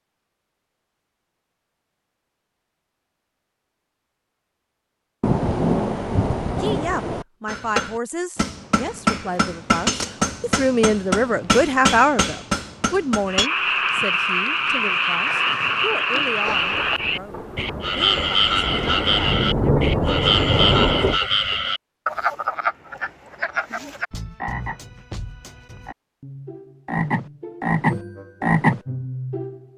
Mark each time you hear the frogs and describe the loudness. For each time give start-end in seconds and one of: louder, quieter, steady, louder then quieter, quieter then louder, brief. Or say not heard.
13.2-29.6 quieter then louder.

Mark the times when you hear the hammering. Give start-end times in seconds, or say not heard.
7.5-13.5.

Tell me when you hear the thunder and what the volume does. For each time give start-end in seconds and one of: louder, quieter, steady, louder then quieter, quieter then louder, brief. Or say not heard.
5.2-7.2 brief
16.4-21.2 louder.